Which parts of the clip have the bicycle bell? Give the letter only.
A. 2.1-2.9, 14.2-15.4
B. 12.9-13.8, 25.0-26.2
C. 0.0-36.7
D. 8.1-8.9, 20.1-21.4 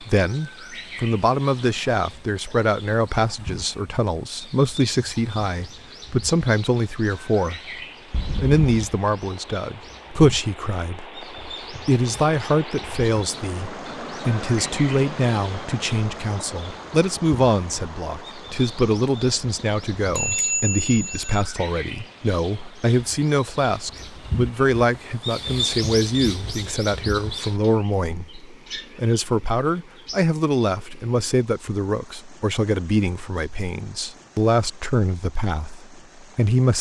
D.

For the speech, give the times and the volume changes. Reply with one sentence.
The speech can be heard from 0.0 to 36.7 s, at a steady volume.